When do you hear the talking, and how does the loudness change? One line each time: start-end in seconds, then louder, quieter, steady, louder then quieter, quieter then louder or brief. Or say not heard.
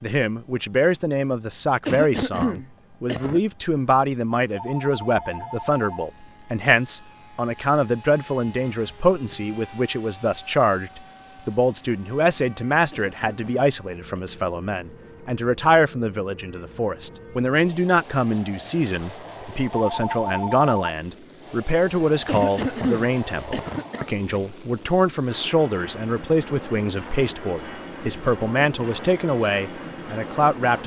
0.0-30.8 steady.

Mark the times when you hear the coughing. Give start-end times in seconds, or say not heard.
1.9-3.4, 12.9-14.2, 22.2-24.4.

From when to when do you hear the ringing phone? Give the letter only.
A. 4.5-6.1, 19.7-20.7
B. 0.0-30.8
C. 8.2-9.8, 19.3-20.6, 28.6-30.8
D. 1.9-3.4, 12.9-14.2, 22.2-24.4
A.